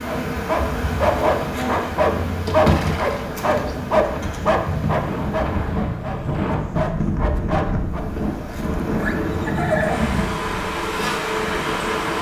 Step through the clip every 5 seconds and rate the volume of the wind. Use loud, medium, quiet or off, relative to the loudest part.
medium, loud, medium.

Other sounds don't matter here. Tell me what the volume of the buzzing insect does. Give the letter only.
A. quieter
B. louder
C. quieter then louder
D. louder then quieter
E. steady
C.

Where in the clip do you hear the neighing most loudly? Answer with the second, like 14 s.
10 s.